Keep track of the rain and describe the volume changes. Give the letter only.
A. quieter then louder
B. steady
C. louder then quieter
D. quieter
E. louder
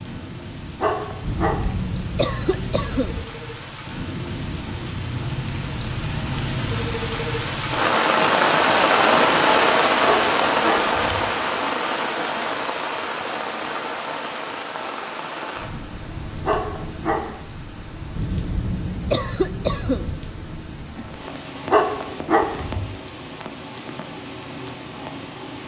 C.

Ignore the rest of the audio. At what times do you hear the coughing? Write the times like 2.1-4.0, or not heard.
1.2-3.2, 18.1-20.1.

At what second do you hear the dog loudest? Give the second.
22 s.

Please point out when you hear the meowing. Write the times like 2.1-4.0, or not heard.
not heard.